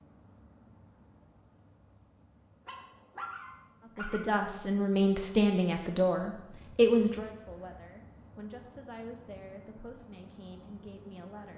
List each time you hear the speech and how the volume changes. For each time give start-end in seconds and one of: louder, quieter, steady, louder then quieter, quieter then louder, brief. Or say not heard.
4.0-11.5 quieter.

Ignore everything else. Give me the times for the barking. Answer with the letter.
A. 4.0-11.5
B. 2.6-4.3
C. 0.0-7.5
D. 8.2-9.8
B.